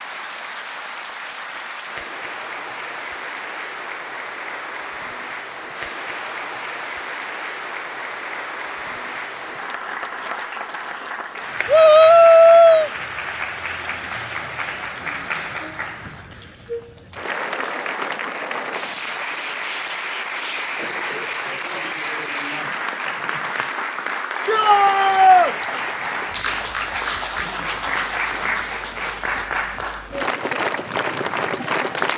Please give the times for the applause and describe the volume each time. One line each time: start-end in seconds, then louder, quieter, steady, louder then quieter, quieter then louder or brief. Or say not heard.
0.0-32.1 louder.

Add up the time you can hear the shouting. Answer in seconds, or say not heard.
2 s.